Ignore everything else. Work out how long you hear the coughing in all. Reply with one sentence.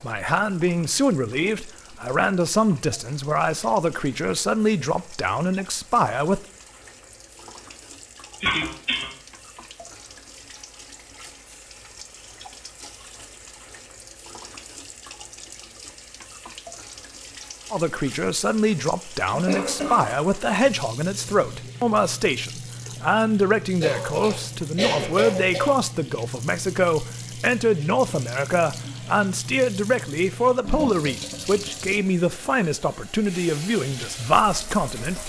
You can hear the coughing for 4 seconds altogether.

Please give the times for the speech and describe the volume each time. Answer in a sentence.
The speech can be heard from 0.0 to 6.4 s, at a steady volume; and from 17.7 to 35.2 s, at a steady volume.